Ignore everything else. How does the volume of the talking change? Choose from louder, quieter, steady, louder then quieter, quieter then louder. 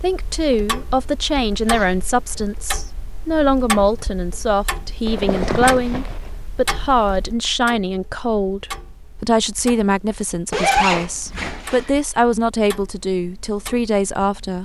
steady.